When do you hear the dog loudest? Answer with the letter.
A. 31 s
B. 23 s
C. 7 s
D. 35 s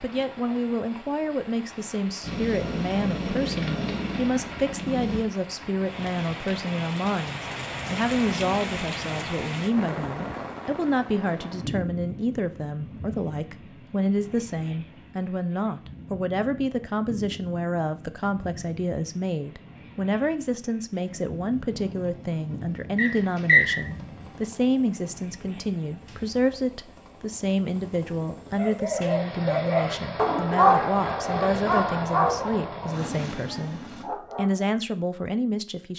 A.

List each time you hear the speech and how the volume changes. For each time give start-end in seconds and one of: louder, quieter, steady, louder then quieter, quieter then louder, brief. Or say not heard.
0.0-35.9 steady.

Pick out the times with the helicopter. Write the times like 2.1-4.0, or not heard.
2.2-5.2, 21.0-34.0.